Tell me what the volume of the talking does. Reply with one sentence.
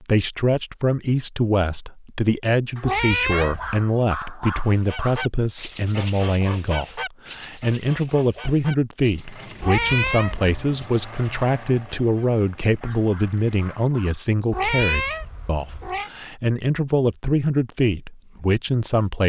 The volume of the talking stays about the same.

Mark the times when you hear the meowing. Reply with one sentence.
The meowing can be heard from 2.8 to 3.9 s, from 9.6 to 10.5 s and from 14.5 to 16.1 s.